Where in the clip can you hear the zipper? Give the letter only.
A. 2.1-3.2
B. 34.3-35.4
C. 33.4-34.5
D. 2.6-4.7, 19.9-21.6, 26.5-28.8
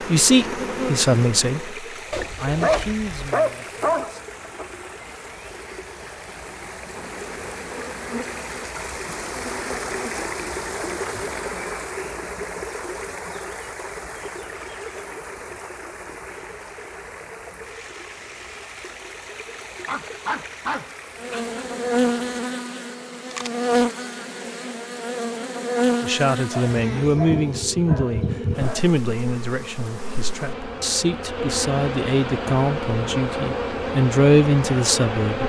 A.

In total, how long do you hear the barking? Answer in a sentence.
The barking can be heard for 6 seconds in total.